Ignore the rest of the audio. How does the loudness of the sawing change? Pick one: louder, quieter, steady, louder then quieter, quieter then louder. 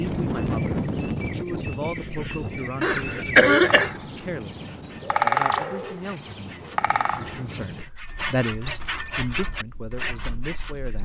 louder.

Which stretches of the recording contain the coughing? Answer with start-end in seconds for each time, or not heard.
2.8-4.0.